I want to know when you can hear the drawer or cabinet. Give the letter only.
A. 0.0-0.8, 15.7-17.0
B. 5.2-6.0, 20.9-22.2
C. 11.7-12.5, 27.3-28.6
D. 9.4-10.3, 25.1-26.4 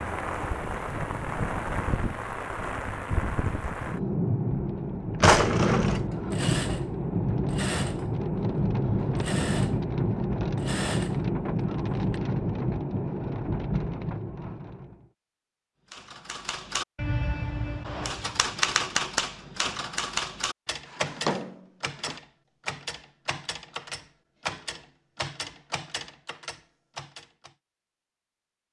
B.